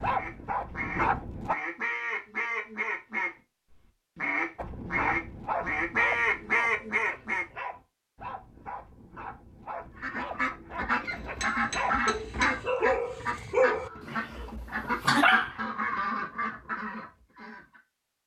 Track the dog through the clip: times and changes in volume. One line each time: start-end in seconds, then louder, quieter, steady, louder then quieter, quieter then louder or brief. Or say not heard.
0.0-1.6 brief
4.5-15.6 quieter then louder.